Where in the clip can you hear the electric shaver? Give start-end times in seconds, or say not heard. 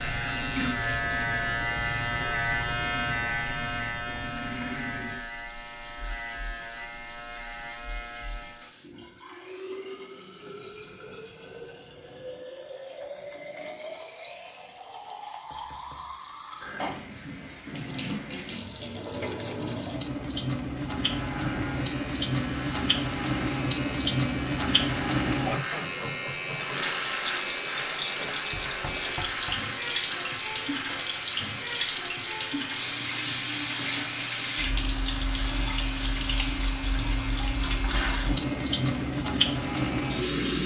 0.0-8.7, 20.9-40.6.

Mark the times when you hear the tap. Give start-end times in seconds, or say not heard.
0.0-40.6.